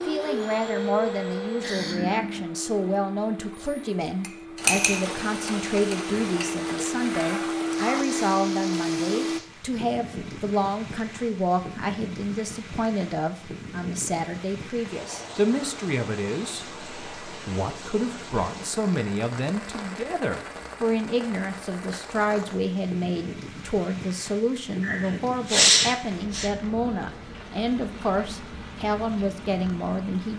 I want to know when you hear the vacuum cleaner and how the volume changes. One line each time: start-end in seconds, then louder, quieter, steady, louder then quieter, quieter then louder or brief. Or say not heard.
0.0-9.4 quieter then louder.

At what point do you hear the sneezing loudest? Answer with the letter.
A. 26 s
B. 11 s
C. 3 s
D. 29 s
A.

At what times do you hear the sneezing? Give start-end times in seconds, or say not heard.
1.6-2.5, 24.8-26.5.